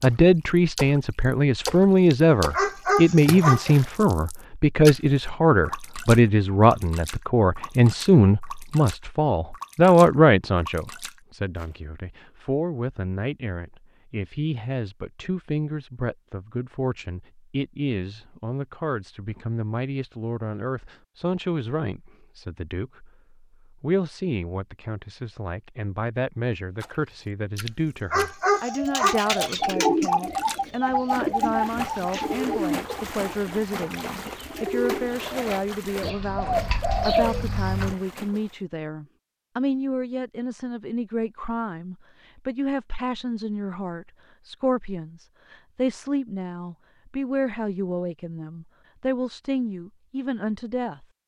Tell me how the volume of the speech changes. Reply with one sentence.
The loudness of the speech goes down.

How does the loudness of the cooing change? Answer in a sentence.
The volume of the cooing goes down, then up.